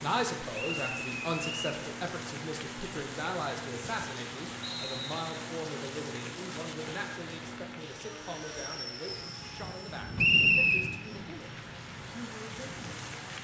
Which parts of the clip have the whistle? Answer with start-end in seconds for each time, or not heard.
0.6-1.8, 4.6-5.5, 10.2-10.8.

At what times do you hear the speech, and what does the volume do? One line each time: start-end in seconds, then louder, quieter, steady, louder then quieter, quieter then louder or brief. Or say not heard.
0.0-12.8 quieter.